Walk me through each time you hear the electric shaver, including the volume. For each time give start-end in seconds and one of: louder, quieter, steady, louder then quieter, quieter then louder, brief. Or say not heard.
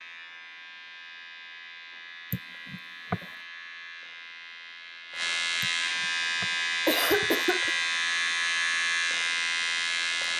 0.0-10.3 louder.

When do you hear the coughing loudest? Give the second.
7 s.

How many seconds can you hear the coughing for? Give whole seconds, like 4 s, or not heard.
3 s.